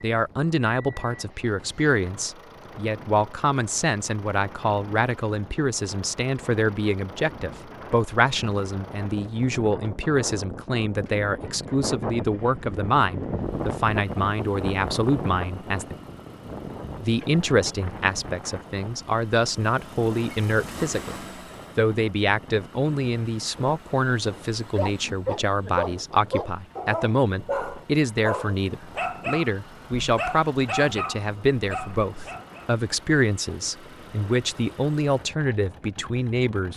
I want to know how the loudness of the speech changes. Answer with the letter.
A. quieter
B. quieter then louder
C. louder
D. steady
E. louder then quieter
D.